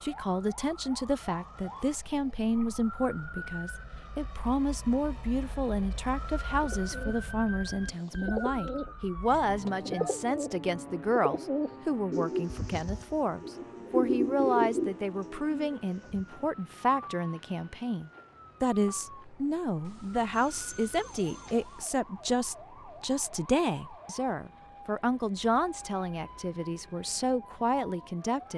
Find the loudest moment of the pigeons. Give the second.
14 s.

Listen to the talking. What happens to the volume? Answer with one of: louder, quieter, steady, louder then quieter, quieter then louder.
steady.